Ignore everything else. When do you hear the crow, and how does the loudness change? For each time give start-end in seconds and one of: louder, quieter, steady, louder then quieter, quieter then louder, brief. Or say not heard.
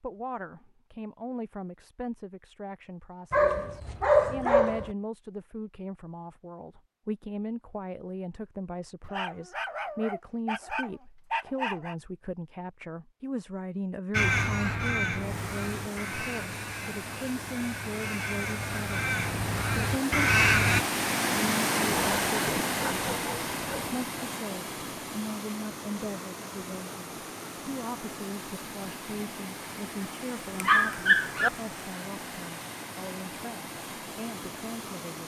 14.1-20.9 quieter then louder.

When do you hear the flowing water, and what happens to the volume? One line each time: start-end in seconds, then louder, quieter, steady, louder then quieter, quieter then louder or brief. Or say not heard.
15.1-35.2 louder then quieter.